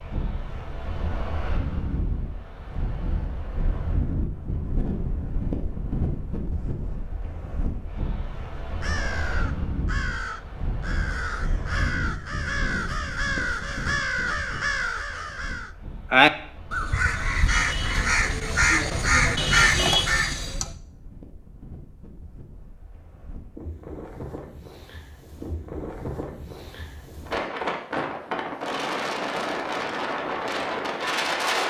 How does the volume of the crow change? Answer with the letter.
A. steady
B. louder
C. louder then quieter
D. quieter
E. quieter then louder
B.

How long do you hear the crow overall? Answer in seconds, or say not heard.
12 s.